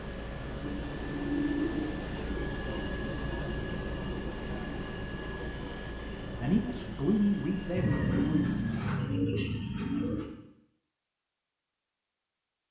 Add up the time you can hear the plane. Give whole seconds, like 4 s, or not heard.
9 s.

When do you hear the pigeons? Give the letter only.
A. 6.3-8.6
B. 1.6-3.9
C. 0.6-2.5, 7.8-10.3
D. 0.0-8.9
C.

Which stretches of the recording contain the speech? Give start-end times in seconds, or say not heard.
6.3-8.6.